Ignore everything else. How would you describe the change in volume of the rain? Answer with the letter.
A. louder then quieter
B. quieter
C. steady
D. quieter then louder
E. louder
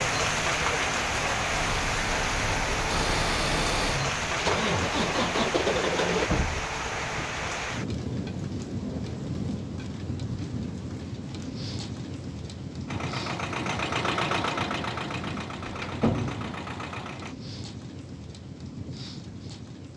B.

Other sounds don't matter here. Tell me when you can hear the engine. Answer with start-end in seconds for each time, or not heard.
1.5-6.3, 12.8-17.4.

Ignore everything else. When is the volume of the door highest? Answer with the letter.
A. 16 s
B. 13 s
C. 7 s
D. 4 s
A.